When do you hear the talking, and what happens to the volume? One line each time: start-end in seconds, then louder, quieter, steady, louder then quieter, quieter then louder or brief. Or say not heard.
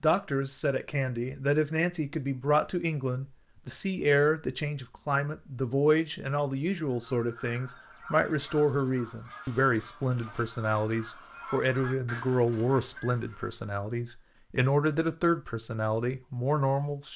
0.0-17.1 steady.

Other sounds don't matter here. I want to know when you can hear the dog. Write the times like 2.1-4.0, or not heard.
not heard.